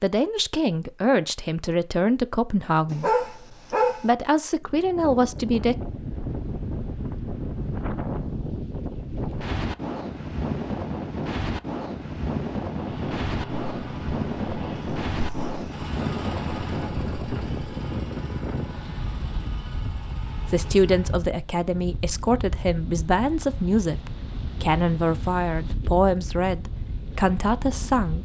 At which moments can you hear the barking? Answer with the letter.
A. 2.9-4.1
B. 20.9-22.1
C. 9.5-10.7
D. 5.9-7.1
A.